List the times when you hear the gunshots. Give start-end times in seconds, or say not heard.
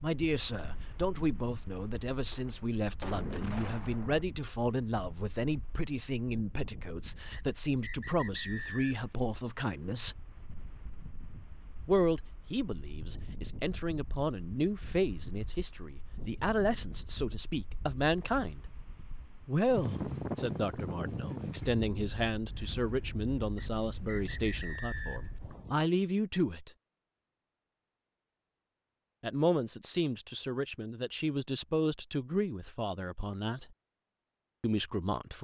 2.3-4.2.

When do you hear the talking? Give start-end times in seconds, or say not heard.
0.0-10.2, 11.8-18.6, 19.4-26.7, 29.2-33.6, 34.6-35.4.